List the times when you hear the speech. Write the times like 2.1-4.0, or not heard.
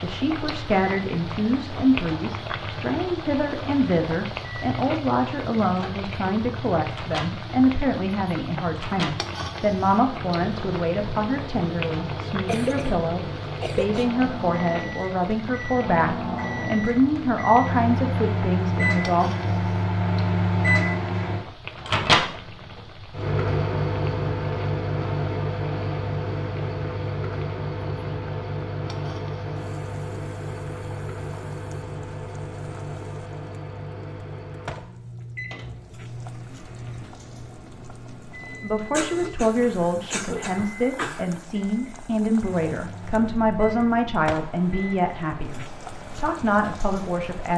0.0-19.4, 38.6-47.5.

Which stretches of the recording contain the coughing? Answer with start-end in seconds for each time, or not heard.
12.4-14.1, 38.9-41.3.